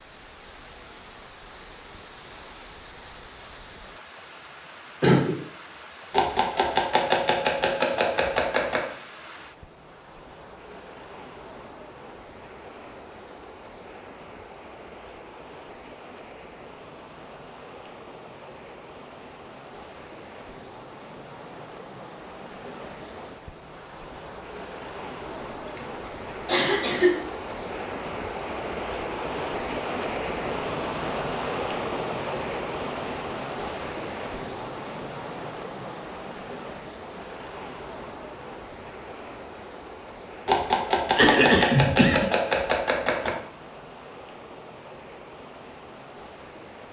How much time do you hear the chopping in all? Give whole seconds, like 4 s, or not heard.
6 s.